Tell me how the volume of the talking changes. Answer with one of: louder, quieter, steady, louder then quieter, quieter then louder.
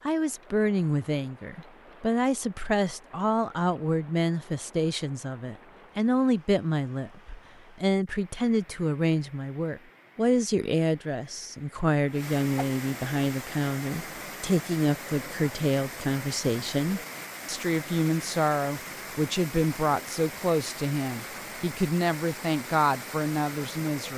steady.